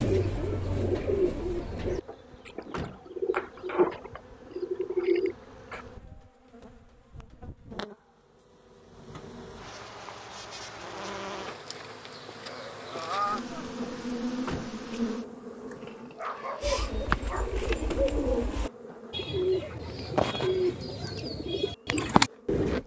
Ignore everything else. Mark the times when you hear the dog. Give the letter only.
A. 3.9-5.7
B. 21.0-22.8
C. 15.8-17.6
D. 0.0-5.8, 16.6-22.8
C.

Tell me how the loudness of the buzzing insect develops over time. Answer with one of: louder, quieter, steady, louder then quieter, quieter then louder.
louder then quieter.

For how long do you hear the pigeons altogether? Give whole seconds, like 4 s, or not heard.
12 s.